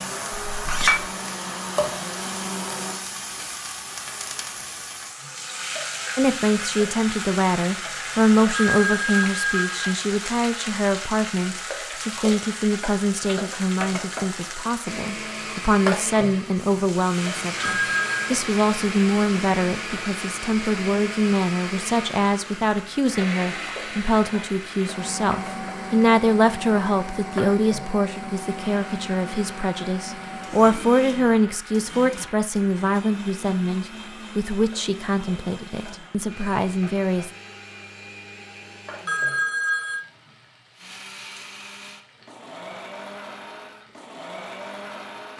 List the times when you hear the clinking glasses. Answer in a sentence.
The clinking glasses can be heard from 0.3 to 1.1 s.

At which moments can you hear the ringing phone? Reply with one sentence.
The ringing phone can be heard from 8.5 to 10.1 s, from 17.6 to 18.3 s and from 39.0 to 40.0 s.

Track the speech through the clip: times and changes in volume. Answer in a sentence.
You can hear the speech from 6.2 to 37.3 s, at a steady volume.